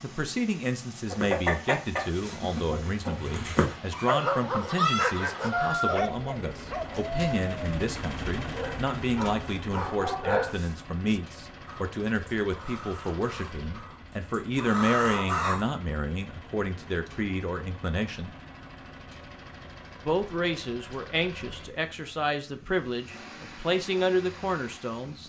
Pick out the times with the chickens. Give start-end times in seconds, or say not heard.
1.1-7.3, 11.7-15.7.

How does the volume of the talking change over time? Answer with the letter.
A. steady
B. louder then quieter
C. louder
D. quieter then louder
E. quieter
A.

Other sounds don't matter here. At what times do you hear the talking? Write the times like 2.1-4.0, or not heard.
0.0-18.4, 20.1-25.2.